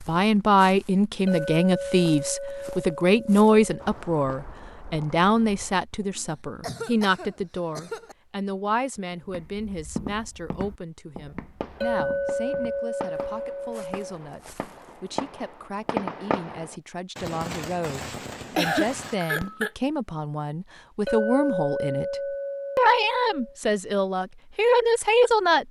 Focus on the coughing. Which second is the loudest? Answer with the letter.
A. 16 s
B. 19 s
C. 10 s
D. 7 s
B.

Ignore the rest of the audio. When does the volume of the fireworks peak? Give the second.
16 s.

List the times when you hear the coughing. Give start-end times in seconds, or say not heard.
6.2-8.2, 18.6-19.7.